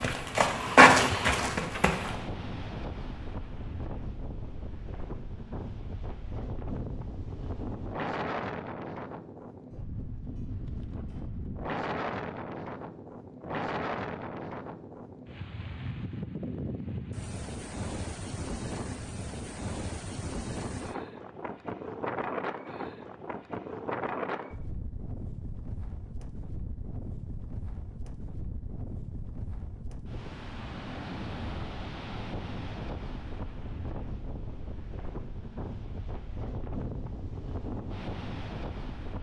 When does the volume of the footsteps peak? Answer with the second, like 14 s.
1 s.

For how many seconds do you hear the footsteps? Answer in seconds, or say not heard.
2 s.